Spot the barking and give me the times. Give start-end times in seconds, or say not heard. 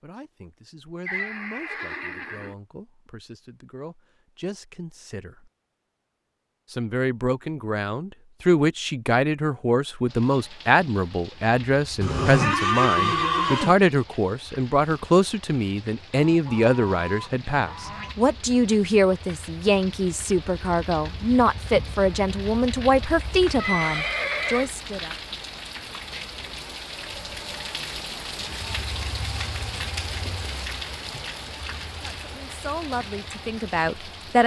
not heard.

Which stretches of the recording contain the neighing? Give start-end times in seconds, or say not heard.
1.1-2.5, 12.0-13.8, 23.6-24.7.